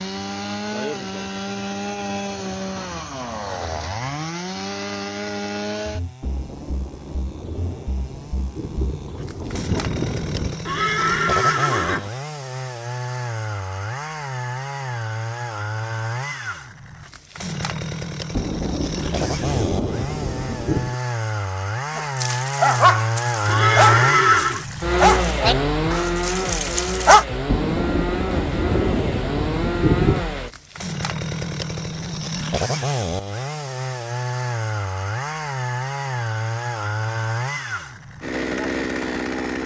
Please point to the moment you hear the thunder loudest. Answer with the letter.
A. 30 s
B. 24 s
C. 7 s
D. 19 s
A.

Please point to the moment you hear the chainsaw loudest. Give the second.
24 s.